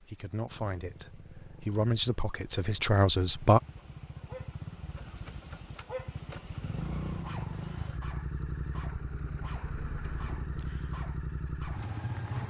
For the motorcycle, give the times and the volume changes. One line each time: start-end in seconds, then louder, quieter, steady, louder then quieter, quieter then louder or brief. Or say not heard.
0.0-12.4 louder.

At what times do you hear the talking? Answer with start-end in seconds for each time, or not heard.
0.0-3.6.